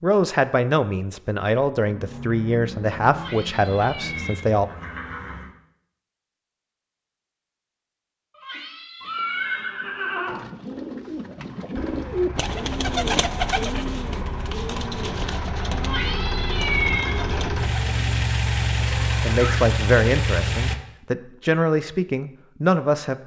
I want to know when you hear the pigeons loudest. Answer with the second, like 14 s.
13 s.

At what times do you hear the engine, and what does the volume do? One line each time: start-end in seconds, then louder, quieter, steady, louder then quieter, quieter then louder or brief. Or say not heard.
1.9-4.3 brief
11.8-20.8 louder.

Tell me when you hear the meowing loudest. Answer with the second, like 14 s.
17 s.